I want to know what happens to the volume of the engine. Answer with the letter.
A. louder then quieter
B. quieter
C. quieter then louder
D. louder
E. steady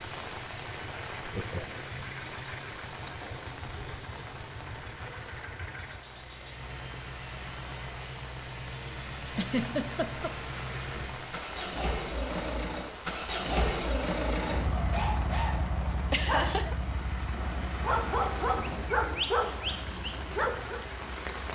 A.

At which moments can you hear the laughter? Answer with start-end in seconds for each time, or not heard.
1.2-1.9, 9.3-10.3, 16.1-16.8.